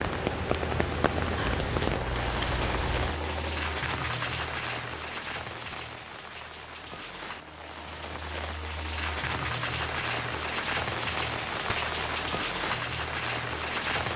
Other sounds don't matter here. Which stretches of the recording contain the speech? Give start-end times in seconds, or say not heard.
not heard.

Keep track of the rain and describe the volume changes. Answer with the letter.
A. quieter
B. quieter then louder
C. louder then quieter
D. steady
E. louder
B.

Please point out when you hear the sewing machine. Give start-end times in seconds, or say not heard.
0.0-3.9.